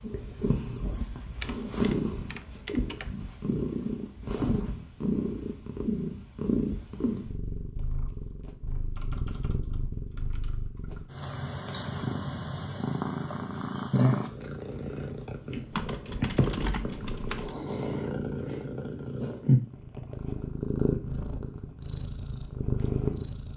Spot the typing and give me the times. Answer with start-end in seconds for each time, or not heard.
1.2-3.1, 8.9-11.2, 15.7-17.6.